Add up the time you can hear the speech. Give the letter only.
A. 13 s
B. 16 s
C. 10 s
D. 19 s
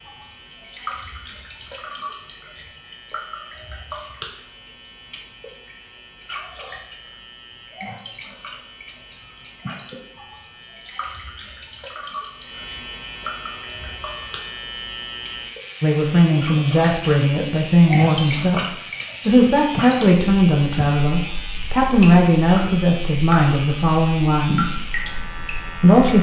C.